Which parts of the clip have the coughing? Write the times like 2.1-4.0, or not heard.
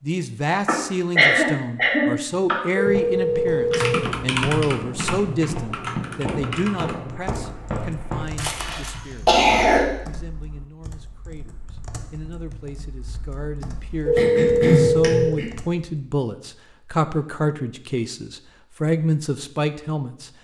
0.7-2.6, 8.6-9.8, 14.2-15.5.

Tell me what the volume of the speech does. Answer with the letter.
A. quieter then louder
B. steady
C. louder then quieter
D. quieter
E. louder
A.